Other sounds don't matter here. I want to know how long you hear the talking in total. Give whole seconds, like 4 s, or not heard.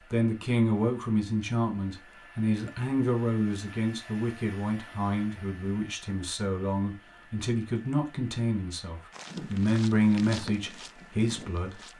12 s.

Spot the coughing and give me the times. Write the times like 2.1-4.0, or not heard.
not heard.